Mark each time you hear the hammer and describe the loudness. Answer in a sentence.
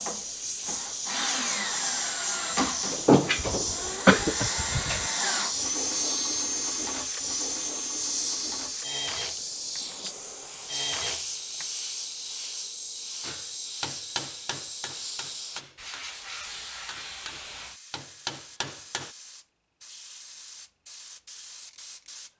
You can hear the hammer from 13.2 to 19.1 s, getting quieter then louder.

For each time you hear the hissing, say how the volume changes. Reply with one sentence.
The hissing can be heard from 0.0 to 22.3 s, getting quieter.